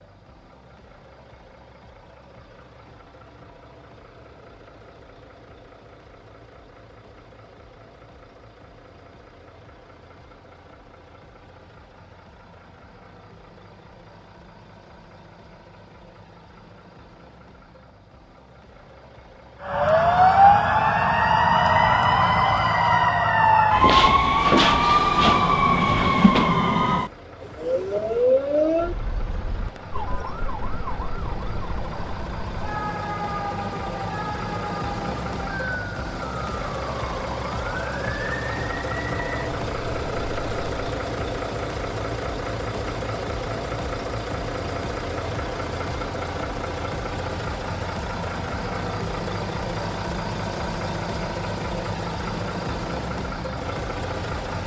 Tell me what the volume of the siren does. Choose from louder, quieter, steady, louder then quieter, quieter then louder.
quieter.